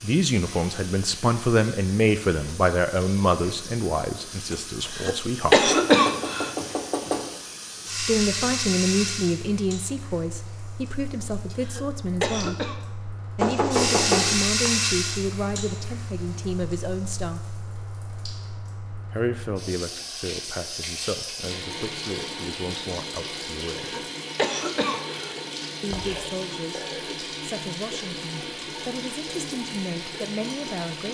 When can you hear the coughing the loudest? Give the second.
6 s.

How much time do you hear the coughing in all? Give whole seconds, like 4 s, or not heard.
5 s.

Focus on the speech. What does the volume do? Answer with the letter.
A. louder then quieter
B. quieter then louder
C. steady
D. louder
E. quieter
E.